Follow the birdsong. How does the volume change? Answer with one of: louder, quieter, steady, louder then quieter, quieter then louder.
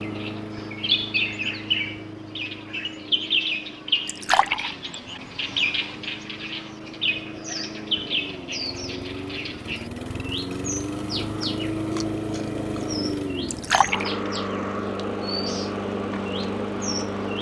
quieter.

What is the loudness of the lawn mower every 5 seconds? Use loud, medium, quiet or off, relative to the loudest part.
medium, medium, loud, loud.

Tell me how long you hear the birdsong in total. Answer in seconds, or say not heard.
17 s.